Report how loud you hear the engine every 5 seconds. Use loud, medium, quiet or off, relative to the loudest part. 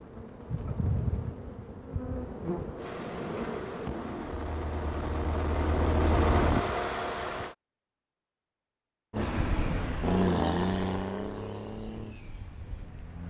medium, loud, loud.